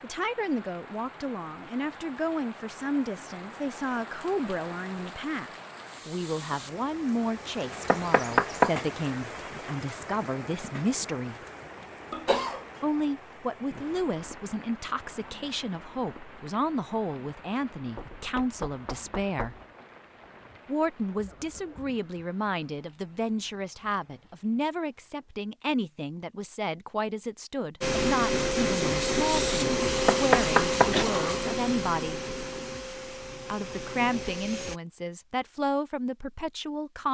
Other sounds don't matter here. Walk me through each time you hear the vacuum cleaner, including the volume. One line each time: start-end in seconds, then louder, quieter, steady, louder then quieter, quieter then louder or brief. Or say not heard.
27.8-34.8 quieter.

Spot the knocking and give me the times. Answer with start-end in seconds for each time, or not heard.
7.8-8.7, 17.9-19.6, 30.1-30.9.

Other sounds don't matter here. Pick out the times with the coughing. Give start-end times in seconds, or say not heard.
12.1-12.7, 30.9-31.6.